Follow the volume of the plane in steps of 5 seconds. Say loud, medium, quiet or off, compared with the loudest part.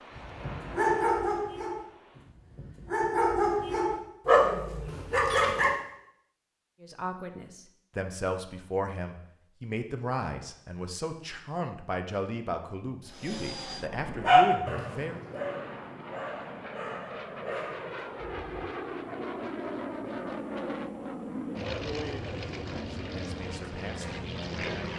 medium, off, medium, loud, loud.